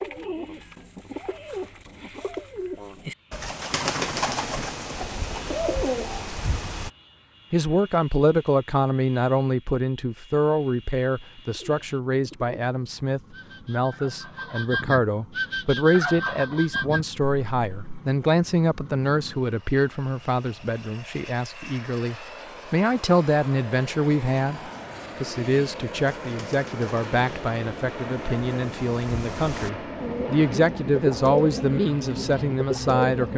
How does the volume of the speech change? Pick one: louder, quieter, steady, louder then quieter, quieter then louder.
steady.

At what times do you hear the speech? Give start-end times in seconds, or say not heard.
7.5-33.3.